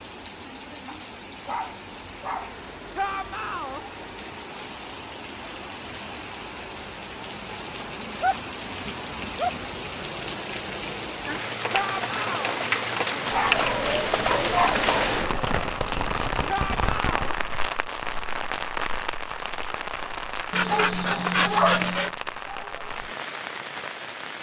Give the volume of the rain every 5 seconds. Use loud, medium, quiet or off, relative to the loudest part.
quiet, medium, loud, loud, medium.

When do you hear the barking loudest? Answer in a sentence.
The loudest moment of the barking is at 22 seconds.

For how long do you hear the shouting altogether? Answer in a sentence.
The shouting can be heard for 3 seconds in total.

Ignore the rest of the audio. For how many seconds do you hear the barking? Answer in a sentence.
The barking can be heard for 7 seconds in total.